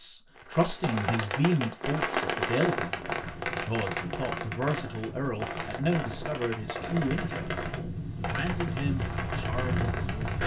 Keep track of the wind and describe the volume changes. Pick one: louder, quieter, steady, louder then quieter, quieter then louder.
louder.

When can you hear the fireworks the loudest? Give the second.
2 s.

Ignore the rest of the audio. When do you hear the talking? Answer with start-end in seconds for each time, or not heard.
0.0-3.0, 3.5-7.7, 8.2-10.4.